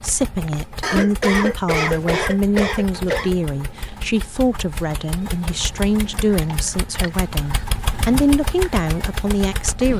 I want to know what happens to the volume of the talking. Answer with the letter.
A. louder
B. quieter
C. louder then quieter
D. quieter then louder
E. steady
E.